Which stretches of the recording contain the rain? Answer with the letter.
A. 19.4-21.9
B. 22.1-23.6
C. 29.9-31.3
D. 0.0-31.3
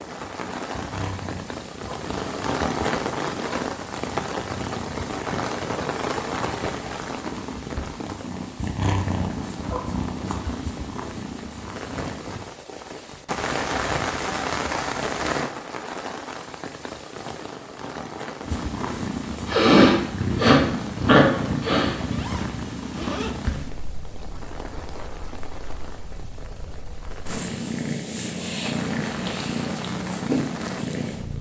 D.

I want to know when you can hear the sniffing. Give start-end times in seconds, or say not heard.
19.4-21.9.